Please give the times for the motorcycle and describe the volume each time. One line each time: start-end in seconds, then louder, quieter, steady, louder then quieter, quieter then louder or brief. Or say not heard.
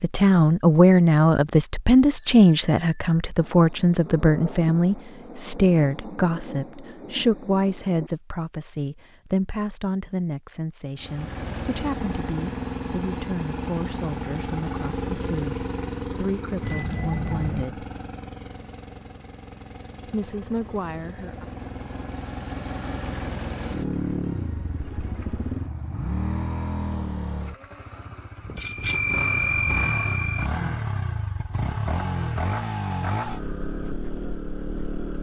10.9-35.1 quieter then louder.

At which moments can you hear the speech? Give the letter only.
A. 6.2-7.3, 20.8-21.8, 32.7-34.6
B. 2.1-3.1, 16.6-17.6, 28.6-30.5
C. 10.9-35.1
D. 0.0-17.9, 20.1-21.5
D.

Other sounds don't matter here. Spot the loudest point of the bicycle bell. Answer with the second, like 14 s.
29 s.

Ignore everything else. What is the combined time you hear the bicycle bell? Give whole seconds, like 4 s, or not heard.
4 s.